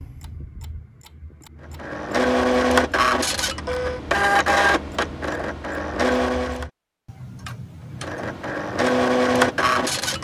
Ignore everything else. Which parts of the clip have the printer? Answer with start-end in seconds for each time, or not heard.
1.8-6.7, 8.0-10.1.